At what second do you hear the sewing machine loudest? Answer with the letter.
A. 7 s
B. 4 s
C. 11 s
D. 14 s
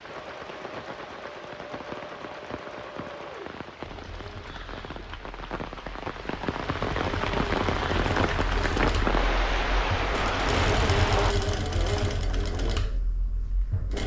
C.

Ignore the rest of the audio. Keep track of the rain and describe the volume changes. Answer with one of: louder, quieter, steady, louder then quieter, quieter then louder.
louder.